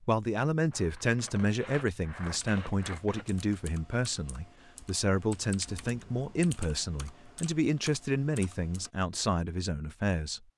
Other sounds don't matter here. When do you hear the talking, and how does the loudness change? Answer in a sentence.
You can hear the talking from 0.0 to 10.5 s, at a steady volume.